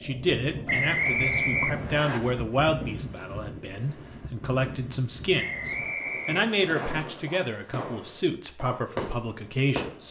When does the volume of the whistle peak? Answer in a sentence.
The volume of the whistle peaks at 1 second.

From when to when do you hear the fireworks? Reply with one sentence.
You can hear the fireworks from 6.0 to 10.0 s.